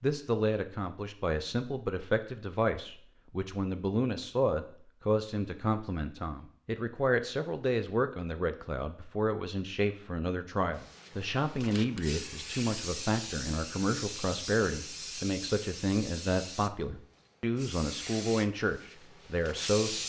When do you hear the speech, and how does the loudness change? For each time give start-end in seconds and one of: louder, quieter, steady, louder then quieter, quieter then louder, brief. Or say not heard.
0.0-20.0 steady.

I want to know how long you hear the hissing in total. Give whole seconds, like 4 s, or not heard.
9 s.